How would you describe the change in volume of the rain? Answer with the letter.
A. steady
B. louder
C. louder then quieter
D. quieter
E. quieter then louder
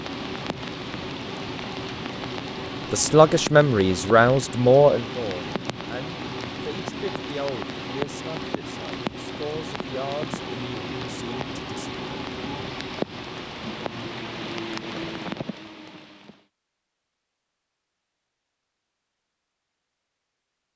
A.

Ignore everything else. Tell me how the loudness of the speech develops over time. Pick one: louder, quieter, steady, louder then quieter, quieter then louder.
quieter.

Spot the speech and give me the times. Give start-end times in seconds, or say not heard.
2.9-11.9.